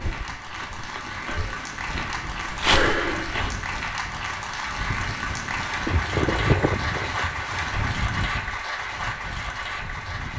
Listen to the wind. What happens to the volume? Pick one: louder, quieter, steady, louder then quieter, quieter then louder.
louder then quieter.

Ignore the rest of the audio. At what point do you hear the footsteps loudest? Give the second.
3 s.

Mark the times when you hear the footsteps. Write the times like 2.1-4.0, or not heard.
0.0-3.6.